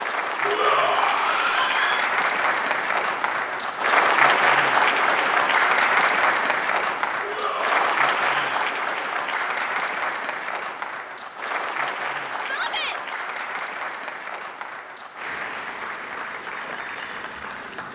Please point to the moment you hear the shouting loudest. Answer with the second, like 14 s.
1 s.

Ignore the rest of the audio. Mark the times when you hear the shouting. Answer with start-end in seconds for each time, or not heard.
0.5-2.0, 7.2-8.7, 12.4-13.0.